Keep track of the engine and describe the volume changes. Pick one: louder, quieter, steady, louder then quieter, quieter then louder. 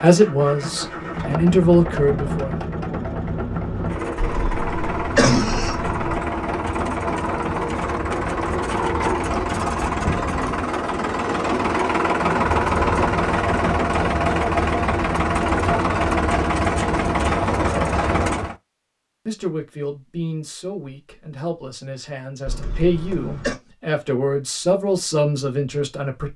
louder.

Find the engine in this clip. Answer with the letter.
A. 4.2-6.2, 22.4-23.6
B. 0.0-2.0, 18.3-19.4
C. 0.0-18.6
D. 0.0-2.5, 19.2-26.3
C.